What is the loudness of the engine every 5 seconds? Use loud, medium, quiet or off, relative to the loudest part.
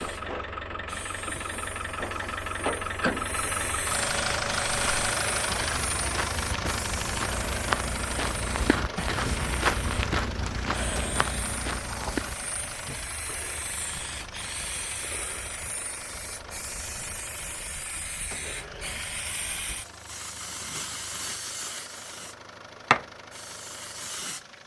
loud, loud, medium, quiet, quiet.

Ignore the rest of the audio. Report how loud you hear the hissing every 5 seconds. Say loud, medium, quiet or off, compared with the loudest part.
medium, medium, medium, medium, loud.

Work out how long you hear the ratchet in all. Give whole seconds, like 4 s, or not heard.
not heard.